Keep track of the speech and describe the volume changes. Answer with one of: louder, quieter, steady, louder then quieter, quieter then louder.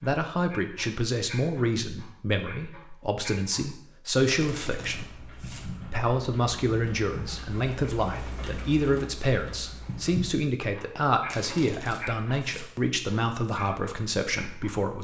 steady.